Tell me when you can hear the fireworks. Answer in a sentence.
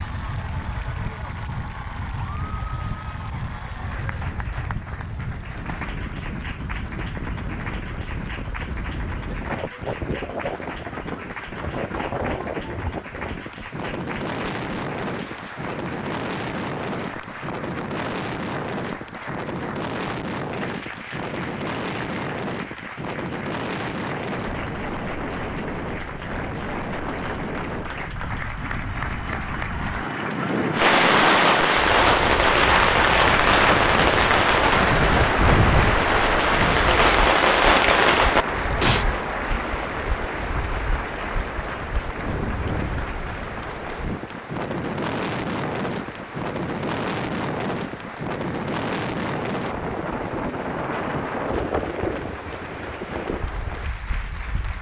You can hear the fireworks from 30.7 to 39.0 s.